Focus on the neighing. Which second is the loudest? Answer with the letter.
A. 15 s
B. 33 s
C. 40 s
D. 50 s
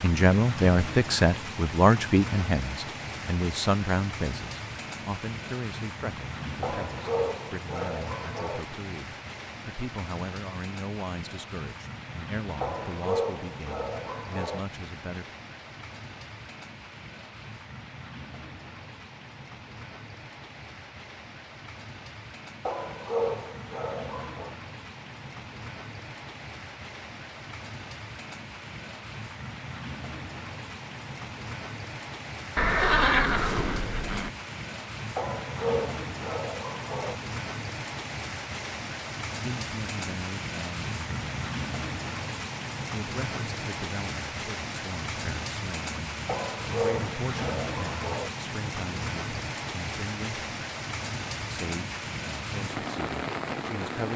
B.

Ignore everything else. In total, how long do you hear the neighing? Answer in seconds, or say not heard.
2 s.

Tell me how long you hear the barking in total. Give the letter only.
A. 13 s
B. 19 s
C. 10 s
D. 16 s
C.